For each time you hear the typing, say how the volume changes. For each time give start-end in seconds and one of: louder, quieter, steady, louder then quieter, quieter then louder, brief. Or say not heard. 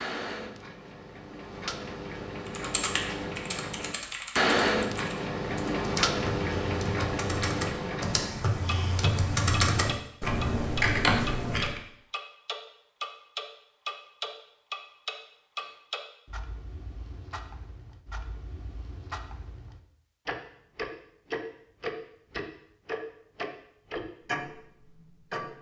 2.5-11.8 quieter then louder.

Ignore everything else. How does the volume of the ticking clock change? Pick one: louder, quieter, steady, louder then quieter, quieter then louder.
quieter then louder.